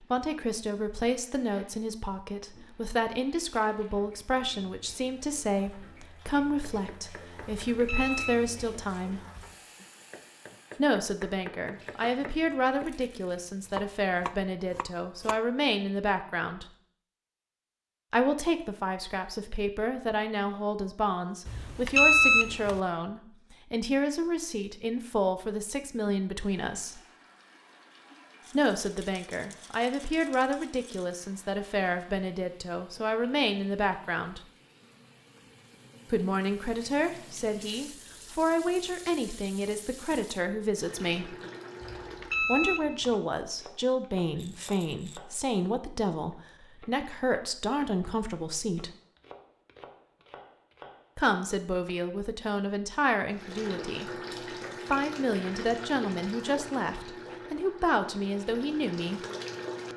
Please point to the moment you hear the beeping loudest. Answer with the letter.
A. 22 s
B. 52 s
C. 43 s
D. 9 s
A.